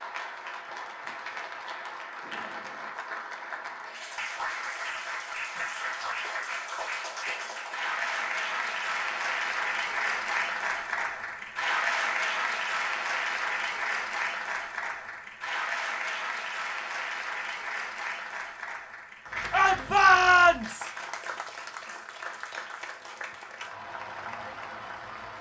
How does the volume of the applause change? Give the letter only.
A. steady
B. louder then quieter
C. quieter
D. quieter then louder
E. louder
B.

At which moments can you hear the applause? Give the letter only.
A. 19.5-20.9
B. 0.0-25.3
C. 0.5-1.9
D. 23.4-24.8
B.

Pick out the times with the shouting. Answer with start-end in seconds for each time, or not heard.
19.5-20.9.